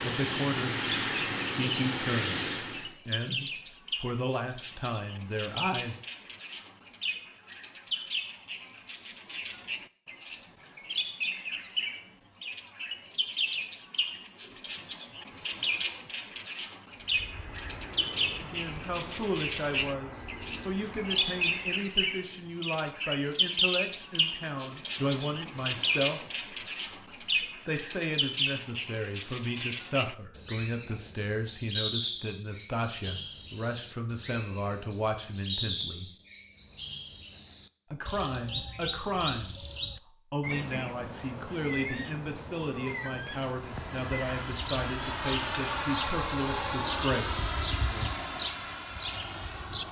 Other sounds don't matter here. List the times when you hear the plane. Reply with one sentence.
The plane can be heard from 0.0 to 3.0 s, from 16.9 to 21.9 s and from 43.5 to 49.8 s.